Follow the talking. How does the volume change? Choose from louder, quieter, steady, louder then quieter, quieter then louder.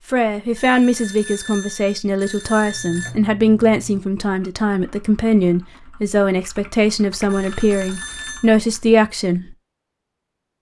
steady.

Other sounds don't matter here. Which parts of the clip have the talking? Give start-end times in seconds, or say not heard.
0.1-9.6.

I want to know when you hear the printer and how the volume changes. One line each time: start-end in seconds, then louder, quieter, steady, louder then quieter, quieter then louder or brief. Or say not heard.
not heard.